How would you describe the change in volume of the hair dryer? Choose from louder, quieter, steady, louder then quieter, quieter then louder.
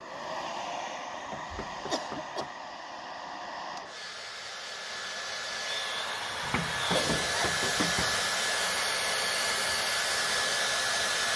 louder.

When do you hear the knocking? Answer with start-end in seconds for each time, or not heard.
1.1-2.5, 6.4-8.3.